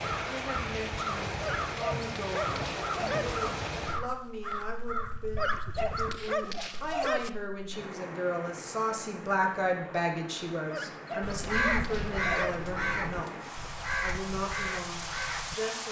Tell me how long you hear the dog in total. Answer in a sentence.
The dog can be heard for 6 seconds in total.